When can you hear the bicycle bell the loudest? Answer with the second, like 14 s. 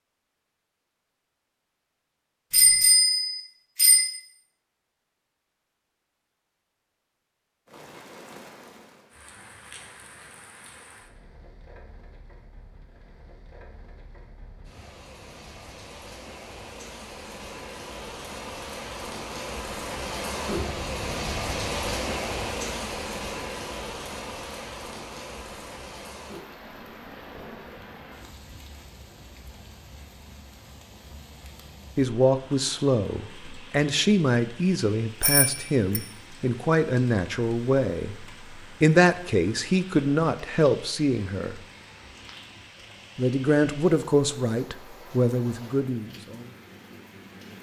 3 s.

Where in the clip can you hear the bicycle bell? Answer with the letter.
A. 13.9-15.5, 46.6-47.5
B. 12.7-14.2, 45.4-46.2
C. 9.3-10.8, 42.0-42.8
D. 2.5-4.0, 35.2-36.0
D.